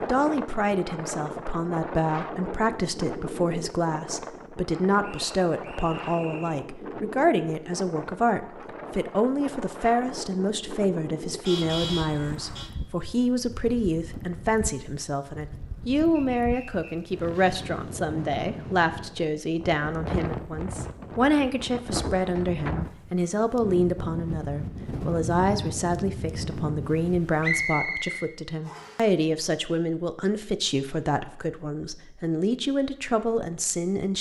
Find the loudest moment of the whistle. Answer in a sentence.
The loudest moment of the whistle is at 28 seconds.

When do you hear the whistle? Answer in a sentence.
The whistle can be heard from 5.0 to 6.7 s, from 16.1 to 17.1 s and from 27.4 to 29.1 s.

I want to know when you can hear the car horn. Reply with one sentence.
The car horn can be heard from 11.4 to 12.7 s.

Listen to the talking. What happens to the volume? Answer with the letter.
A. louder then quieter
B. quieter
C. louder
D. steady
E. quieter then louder
D.